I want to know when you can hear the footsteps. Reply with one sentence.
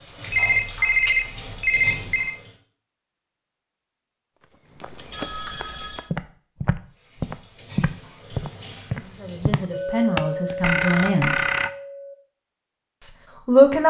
You can hear the footsteps from 4.8 to 10.6 s.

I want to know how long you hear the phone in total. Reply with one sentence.
You can hear the phone for 4 seconds altogether.